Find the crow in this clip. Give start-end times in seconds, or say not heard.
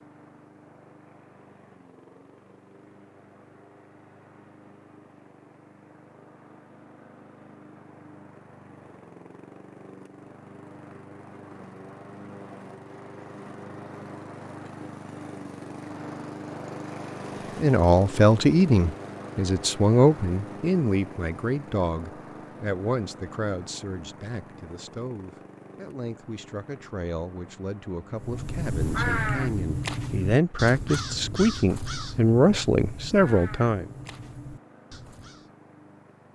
28.1-35.5.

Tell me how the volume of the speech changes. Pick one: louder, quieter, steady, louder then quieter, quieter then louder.
quieter then louder.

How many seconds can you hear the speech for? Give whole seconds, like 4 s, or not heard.
16 s.